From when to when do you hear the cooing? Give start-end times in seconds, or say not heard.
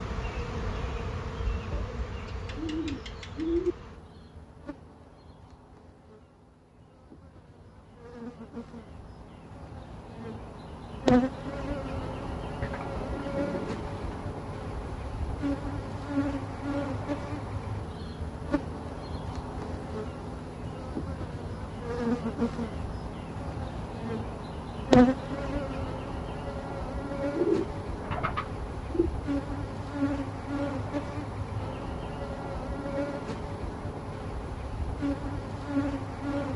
1.7-3.8, 12.6-14.2, 27.3-29.1.